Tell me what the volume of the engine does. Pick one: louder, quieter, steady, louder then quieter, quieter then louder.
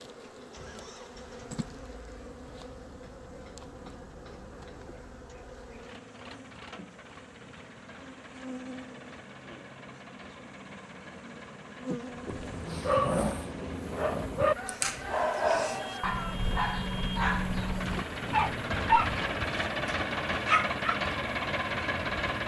louder.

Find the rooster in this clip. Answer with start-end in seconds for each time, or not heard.
14.5-16.4.